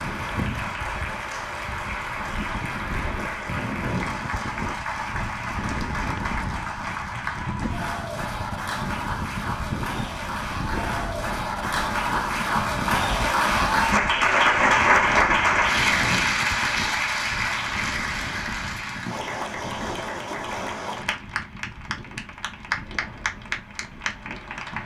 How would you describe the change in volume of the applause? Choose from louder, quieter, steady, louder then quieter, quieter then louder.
louder then quieter.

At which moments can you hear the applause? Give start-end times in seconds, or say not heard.
0.0-24.8.